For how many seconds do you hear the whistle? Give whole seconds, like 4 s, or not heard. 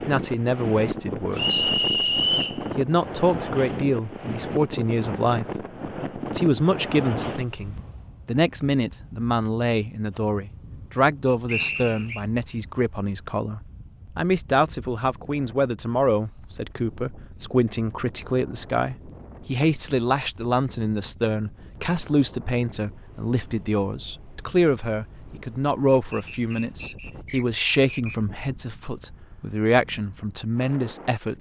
4 s.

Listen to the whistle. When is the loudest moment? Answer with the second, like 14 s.
2 s.